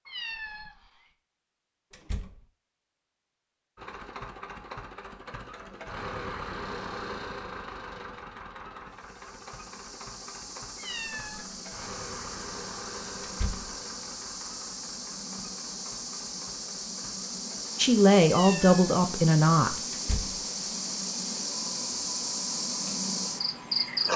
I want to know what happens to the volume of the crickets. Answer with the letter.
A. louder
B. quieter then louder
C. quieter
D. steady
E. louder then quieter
A.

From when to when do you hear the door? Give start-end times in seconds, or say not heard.
1.9-2.5, 13.2-13.8, 19.9-20.4.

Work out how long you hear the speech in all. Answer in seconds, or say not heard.
2 s.